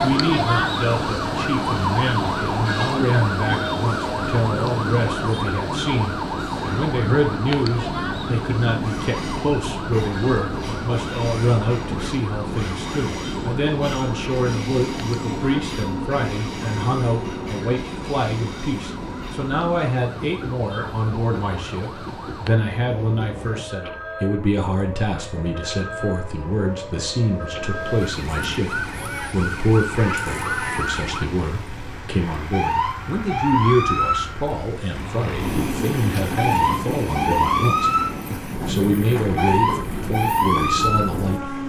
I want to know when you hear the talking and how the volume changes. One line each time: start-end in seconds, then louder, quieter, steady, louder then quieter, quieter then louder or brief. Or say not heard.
0.0-41.6 steady.